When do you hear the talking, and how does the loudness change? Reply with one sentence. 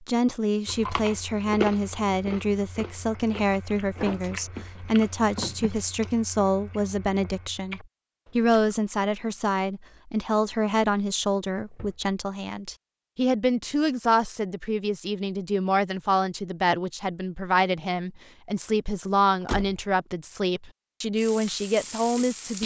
You can hear the talking from 0.1 to 22.6 s, at a steady volume.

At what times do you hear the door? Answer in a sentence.
The door can be heard from 4.0 to 5.7 s, from 11.2 to 11.9 s and from 19.4 to 19.9 s.